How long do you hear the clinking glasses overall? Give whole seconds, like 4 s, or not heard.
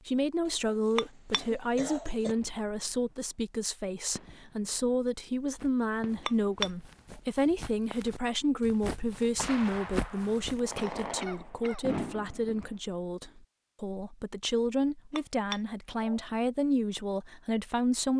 3 s.